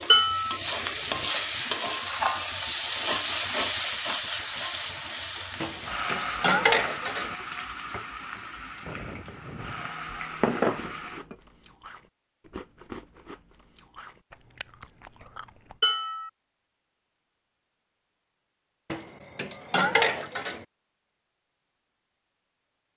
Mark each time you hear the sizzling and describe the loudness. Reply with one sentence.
The sizzling can be heard from 0.0 to 11.2 s, getting quieter.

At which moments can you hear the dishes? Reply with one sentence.
The dishes can be heard from 0.1 to 0.6 s, from 5.6 to 7.3 s, from 9.4 to 11.3 s, from 15.8 to 16.3 s and from 18.9 to 20.6 s.